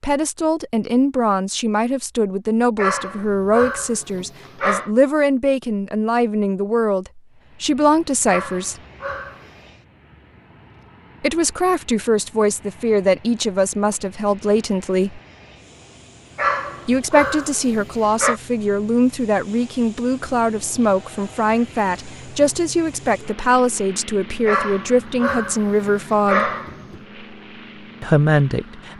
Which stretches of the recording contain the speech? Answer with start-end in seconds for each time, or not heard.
0.0-8.8, 11.2-15.2, 16.9-26.5, 28.0-28.9.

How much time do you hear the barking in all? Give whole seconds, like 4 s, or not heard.
8 s.